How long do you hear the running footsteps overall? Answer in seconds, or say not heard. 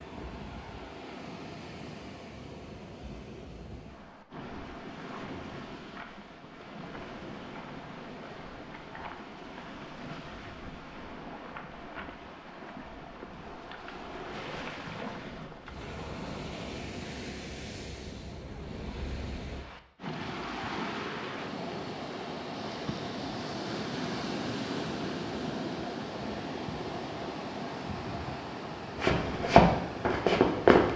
2 s.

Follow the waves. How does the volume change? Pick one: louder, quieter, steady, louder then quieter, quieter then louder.
louder.